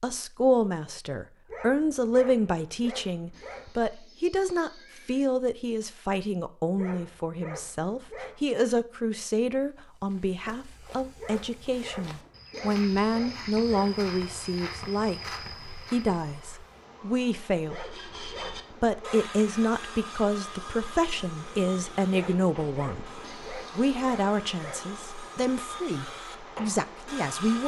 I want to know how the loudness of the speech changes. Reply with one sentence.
The volume of the speech stays about the same.